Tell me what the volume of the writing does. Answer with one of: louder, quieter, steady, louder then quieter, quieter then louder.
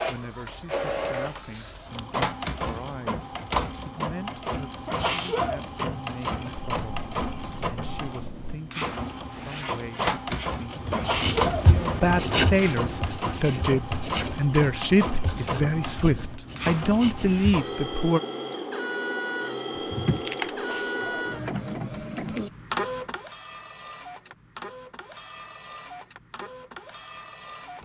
louder then quieter.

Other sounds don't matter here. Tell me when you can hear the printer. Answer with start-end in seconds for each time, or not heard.
0.0-27.8.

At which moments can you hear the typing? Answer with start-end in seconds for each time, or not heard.
6.5-8.6, 19.8-22.5.